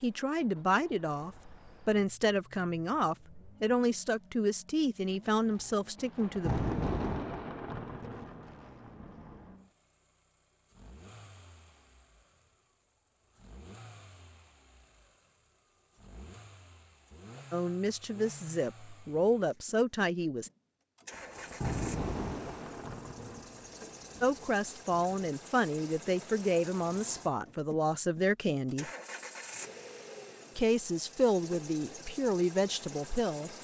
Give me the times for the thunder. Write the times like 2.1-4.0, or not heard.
6.0-9.6, 21.1-25.1.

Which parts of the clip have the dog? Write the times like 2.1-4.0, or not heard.
not heard.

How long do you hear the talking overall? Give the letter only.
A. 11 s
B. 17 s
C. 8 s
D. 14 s
B.